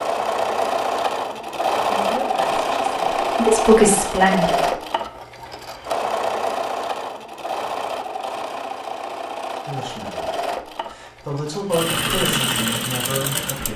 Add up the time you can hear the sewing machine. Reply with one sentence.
You can hear the sewing machine for 14 seconds altogether.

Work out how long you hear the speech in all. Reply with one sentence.
You can hear the speech for 7 seconds altogether.